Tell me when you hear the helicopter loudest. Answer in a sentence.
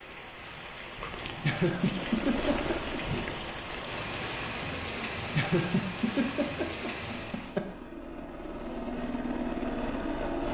The volume of the helicopter peaks at 10 seconds.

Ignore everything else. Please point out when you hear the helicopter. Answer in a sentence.
You can hear the helicopter from 1.8 to 3.9 s and from 7.0 to 10.4 s.